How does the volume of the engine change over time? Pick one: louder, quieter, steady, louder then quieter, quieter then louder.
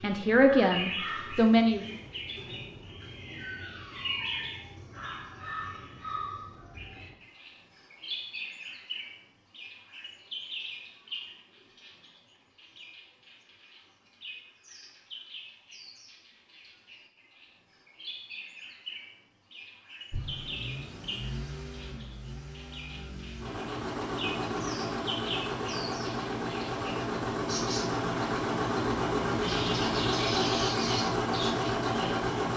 louder.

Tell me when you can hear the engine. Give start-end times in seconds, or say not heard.
20.1-32.5.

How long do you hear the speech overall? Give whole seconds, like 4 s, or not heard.
2 s.